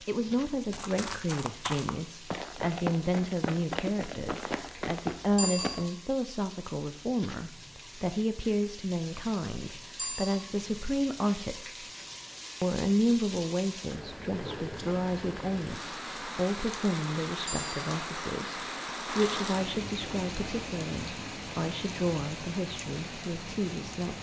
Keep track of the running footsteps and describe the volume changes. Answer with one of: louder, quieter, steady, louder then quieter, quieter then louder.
steady.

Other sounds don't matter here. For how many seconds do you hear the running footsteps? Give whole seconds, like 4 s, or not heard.
5 s.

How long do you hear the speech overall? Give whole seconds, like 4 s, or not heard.
23 s.